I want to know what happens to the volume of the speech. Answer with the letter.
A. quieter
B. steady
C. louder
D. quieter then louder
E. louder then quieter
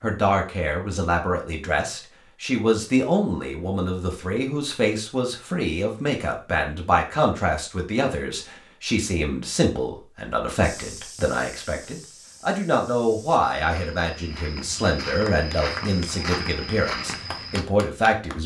B.